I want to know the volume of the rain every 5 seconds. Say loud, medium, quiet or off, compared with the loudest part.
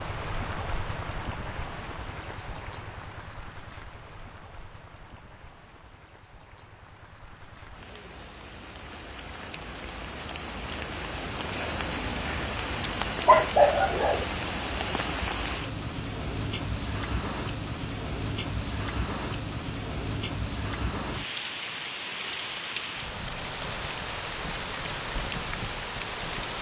medium, quiet, loud, loud, loud, loud.